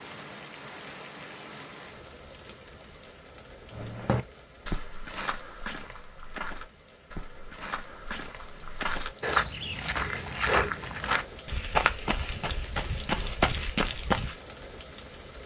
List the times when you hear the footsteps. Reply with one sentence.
You can hear the footsteps from 3.7 to 14.3 s.